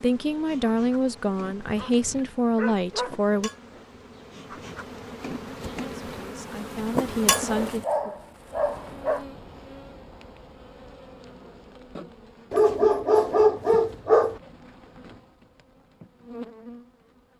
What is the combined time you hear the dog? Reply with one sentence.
You can hear the dog for 6 seconds altogether.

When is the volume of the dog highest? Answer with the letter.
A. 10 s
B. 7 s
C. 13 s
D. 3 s
C.